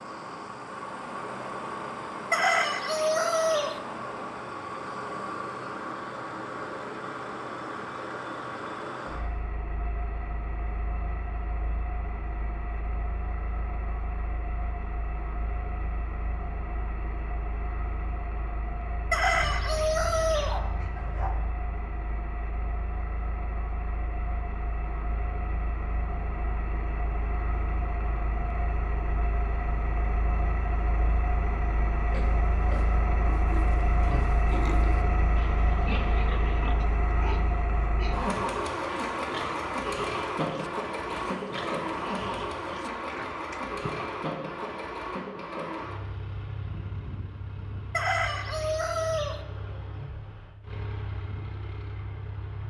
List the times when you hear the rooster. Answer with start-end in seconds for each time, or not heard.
2.3-3.8, 19.1-20.6, 47.9-49.4.